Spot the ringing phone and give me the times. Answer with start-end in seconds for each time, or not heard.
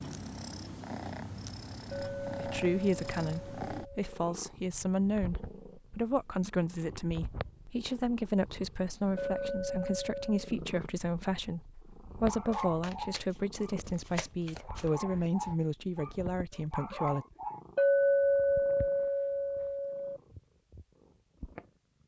not heard.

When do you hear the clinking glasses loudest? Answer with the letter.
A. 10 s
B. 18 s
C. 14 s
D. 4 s
B.